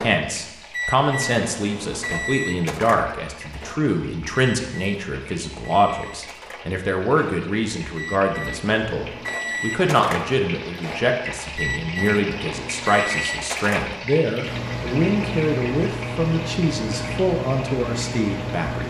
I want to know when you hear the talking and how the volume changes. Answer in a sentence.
The talking can be heard from 0.0 to 18.8 s, at a steady volume.